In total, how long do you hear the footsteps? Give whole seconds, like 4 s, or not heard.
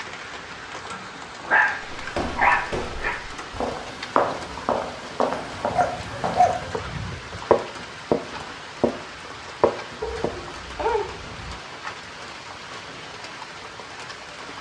8 s.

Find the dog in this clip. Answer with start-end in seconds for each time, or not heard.
1.4-3.2, 5.5-7.4, 10.0-11.6.